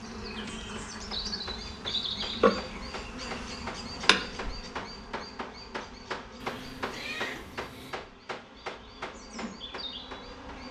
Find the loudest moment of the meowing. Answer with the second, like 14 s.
7 s.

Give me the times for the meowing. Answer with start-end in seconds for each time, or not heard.
0.3-1.1, 6.4-8.0.